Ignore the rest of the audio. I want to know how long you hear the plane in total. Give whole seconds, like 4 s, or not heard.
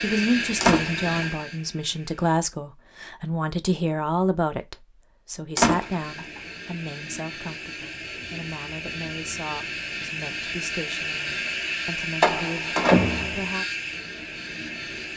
12 s.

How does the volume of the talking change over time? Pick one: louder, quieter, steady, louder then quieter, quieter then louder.
quieter.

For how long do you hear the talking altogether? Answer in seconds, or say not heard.
14 s.